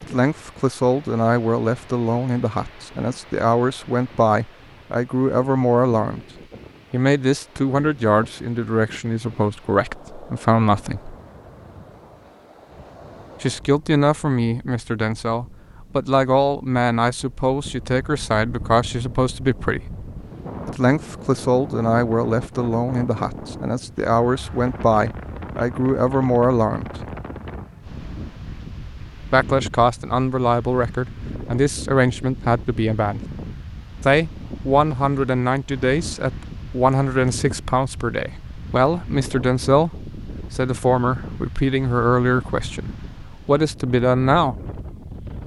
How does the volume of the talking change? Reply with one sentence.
The volume of the talking stays about the same.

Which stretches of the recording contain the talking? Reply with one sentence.
The talking can be heard from 0.0 to 6.2 s, from 6.9 to 11.2 s, from 13.4 to 19.9 s, from 20.6 to 26.9 s, from 29.3 to 33.2 s and from 34.0 to 44.5 s.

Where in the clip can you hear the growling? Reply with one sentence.
The growling can't be heard in this clip.